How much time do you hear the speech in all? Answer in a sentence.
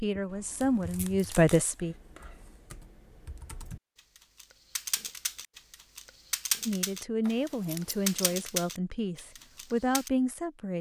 The speech can be heard for 6 seconds in total.